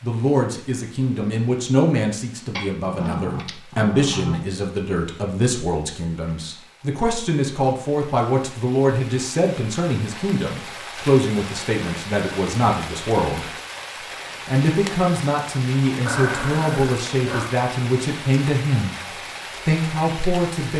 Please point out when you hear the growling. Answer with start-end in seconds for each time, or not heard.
2.5-4.5, 16.1-17.5.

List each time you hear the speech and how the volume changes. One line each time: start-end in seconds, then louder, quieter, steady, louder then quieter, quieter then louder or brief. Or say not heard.
0.0-13.5 steady
14.2-20.7 steady.